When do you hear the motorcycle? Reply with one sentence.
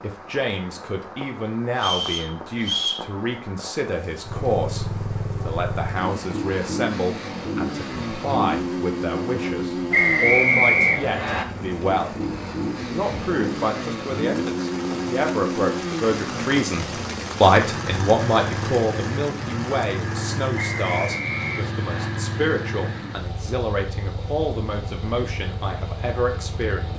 You can hear the motorcycle from 4.2 to 26.9 s.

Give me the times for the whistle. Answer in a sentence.
You can hear the whistle from 1.8 to 3.0 s, from 9.9 to 11.4 s and from 20.6 to 22.1 s.